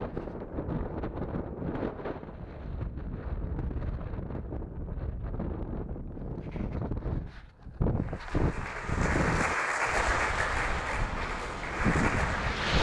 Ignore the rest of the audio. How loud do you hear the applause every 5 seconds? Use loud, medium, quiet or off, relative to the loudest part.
off, loud, loud.